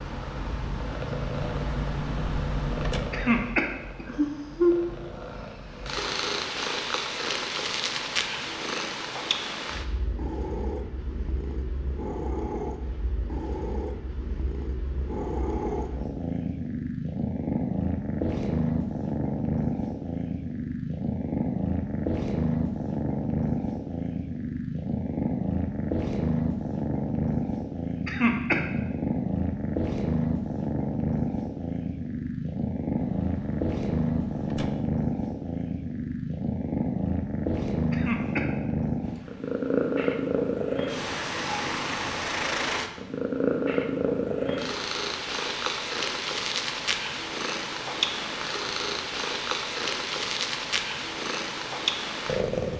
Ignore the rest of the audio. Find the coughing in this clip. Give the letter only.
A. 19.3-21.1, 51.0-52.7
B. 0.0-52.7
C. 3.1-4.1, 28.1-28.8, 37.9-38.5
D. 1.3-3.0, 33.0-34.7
C.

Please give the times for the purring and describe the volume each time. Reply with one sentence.
You can hear the purring from 0.0 to 52.7 s, at a steady volume.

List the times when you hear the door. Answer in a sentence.
The door can be heard from 1.3 to 3.0 s and from 33.0 to 34.7 s.